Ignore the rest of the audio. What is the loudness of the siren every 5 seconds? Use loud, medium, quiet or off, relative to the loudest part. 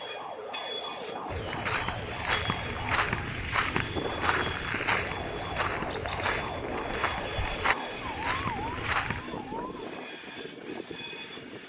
loud, loud, off.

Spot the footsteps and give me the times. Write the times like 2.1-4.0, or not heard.
1.2-9.2.